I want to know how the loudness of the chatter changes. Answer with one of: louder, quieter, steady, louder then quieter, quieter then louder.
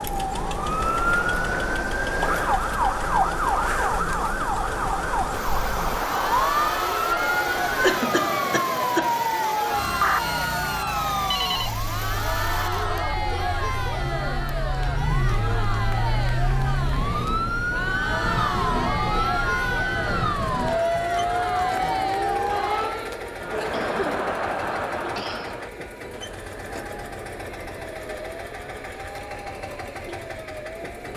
louder.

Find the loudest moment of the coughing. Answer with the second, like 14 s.
8 s.